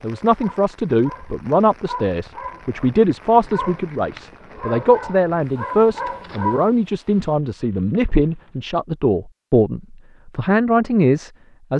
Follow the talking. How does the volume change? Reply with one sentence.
The volume of the talking stays about the same.